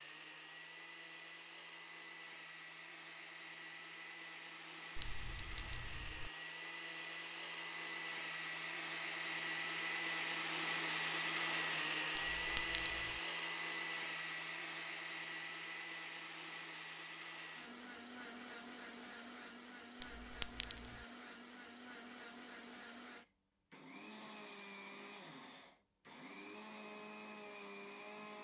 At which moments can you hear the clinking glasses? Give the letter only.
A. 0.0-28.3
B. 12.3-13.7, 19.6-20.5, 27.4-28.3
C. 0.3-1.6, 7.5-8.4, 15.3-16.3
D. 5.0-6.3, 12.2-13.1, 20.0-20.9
D.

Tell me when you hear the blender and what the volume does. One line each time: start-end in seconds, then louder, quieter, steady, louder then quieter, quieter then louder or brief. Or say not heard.
0.0-28.3 louder then quieter.